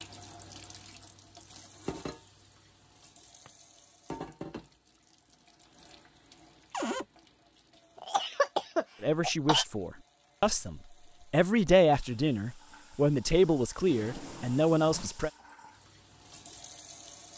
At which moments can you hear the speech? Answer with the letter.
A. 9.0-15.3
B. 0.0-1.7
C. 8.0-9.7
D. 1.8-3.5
A.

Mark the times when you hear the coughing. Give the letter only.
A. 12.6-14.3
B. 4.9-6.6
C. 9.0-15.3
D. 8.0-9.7
D.